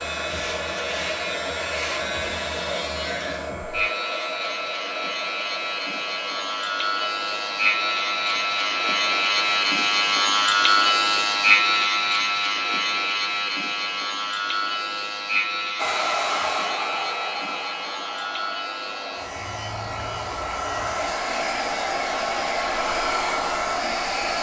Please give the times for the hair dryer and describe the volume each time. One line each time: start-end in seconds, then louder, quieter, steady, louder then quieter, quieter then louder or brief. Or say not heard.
0.0-9.8 quieter
15.8-24.3 quieter then louder.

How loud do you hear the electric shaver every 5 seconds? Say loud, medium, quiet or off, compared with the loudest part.
medium, loud, loud, medium, quiet.